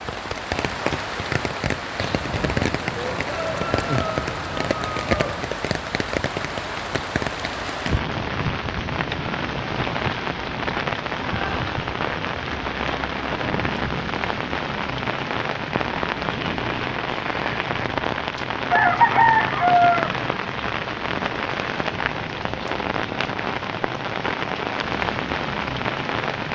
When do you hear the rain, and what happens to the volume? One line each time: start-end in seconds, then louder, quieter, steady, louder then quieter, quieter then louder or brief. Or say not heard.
0.0-26.4 steady.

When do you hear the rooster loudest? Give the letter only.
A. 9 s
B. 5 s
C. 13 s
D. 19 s
D.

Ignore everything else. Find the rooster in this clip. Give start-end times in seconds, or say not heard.
1.9-5.5, 18.7-20.2.